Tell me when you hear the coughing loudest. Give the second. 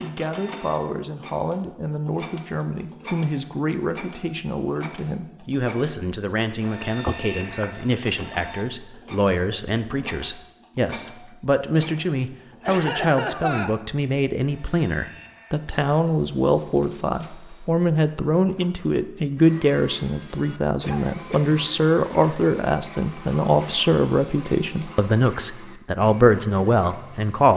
13 s.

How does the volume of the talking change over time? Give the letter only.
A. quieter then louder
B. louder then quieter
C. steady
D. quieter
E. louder
E.